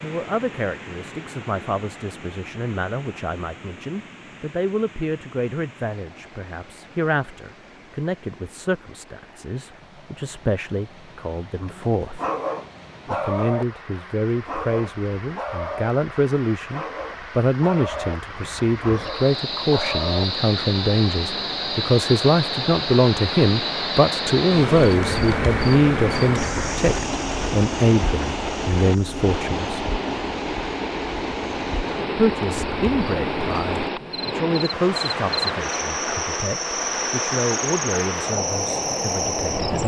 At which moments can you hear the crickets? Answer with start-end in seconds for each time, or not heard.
18.9-39.8.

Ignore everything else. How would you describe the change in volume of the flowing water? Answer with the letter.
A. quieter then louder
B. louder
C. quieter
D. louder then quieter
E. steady
B.